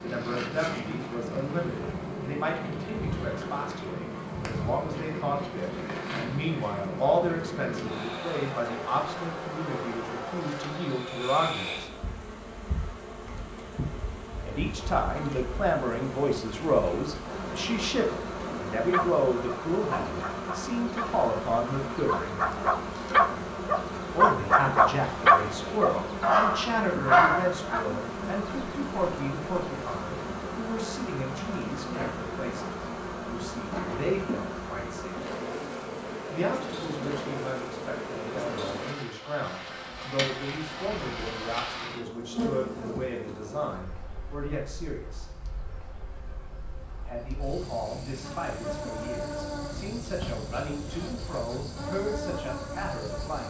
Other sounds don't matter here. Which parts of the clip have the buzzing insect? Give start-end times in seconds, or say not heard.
0.0-53.4.